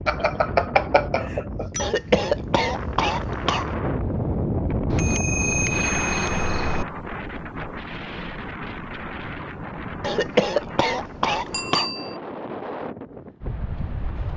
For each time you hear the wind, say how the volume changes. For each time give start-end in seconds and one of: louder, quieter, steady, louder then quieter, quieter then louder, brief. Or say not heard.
0.0-14.3 louder then quieter.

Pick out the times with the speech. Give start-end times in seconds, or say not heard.
not heard.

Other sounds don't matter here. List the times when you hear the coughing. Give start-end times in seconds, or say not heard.
1.8-3.7, 10.0-11.9.